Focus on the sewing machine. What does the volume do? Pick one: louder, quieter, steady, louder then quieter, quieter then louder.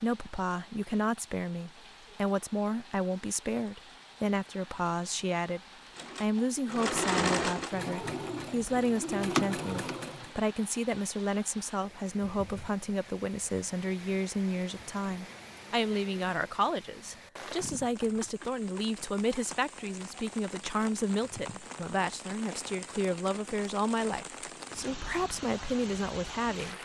quieter then louder.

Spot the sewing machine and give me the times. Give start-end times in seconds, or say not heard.
6.0-10.3.